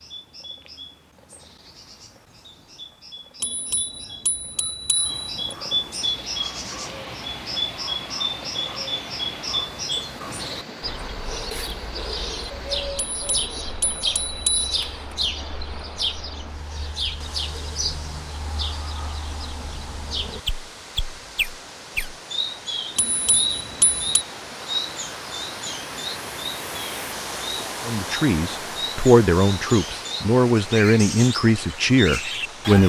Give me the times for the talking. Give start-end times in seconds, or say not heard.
27.9-32.8.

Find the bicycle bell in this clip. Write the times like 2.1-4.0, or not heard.
3.4-5.3, 12.9-14.8, 22.9-24.2.